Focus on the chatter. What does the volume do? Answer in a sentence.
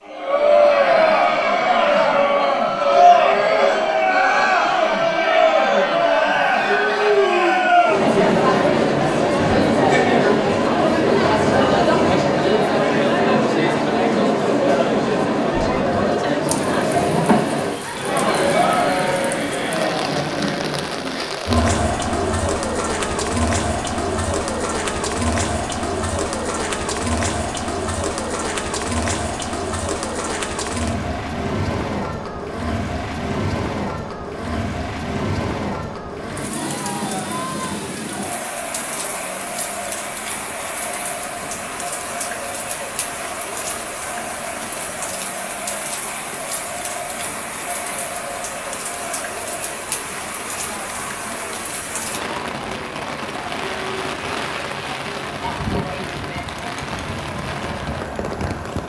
The volume of the chatter goes down.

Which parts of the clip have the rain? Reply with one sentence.
The rain can be heard from 16.4 to 58.8 s.